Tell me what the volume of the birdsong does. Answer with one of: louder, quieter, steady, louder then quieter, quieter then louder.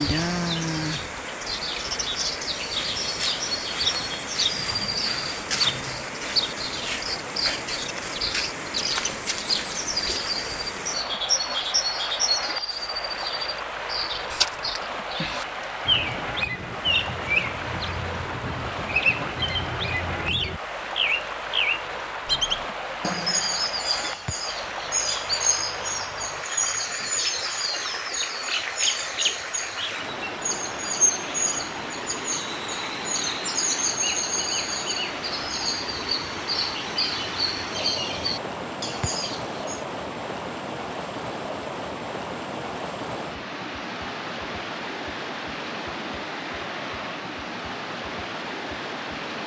steady.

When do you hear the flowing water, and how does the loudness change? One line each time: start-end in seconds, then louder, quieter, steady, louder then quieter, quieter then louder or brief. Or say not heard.
0.0-49.4 steady.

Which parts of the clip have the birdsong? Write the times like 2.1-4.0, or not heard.
0.0-39.8.